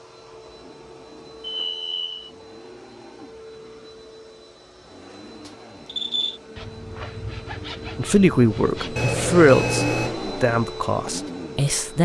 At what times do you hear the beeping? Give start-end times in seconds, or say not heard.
1.4-2.3, 5.5-6.4, 8.9-10.2.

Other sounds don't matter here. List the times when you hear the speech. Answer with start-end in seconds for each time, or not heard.
8.0-12.0.